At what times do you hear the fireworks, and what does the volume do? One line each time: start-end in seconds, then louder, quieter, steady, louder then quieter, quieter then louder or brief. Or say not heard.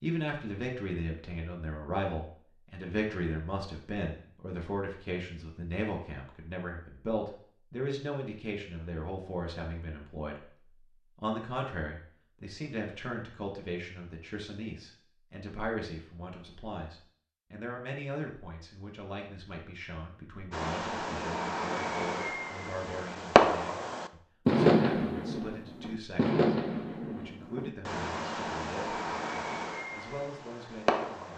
20.5-31.3 louder then quieter.